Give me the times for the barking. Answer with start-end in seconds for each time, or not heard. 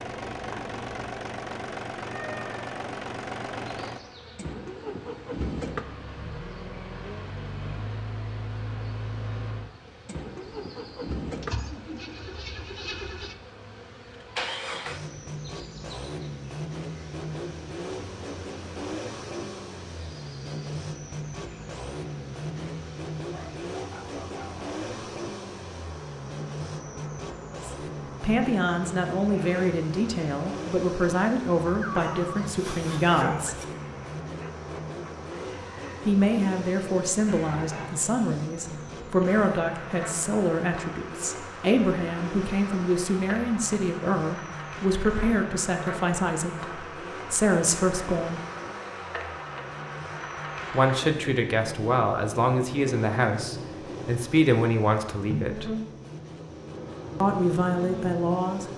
23.3-24.6, 31.6-33.6.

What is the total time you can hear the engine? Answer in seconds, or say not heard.
59 s.